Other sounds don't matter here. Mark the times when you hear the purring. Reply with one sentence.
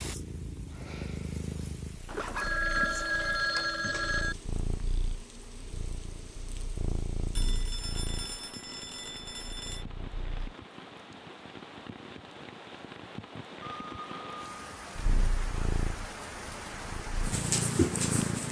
You can hear the purring from 0.0 to 10.6 s and from 14.9 to 18.4 s.